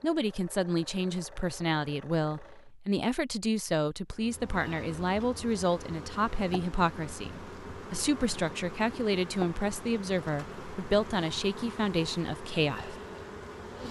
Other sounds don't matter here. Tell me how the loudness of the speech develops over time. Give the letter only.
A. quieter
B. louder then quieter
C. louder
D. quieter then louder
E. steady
E.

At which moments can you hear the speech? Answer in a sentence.
The speech can be heard from 0.0 to 12.9 s.